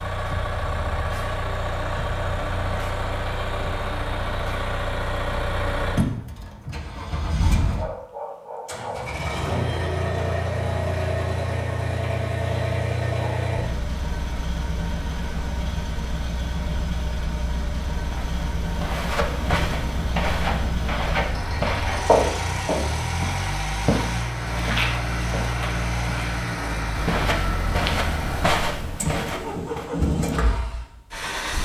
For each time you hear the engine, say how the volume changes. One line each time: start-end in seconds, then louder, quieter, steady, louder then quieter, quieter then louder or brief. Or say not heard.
0.0-31.5 steady.